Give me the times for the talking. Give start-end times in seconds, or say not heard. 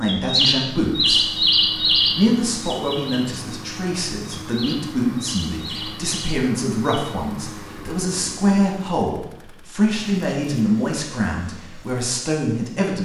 0.0-1.2, 2.1-13.0.